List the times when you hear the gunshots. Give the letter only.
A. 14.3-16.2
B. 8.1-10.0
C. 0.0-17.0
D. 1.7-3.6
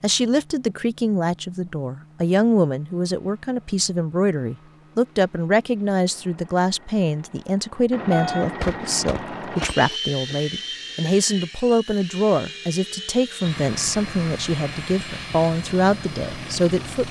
B.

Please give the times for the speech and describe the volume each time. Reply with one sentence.
You can hear the speech from 0.0 to 17.0 s, at a steady volume.